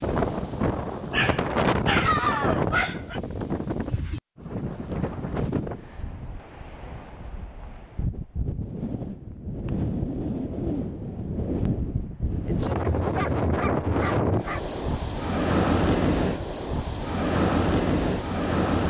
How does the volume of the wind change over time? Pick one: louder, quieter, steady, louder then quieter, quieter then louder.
quieter then louder.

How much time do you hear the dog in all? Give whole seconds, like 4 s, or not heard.
4 s.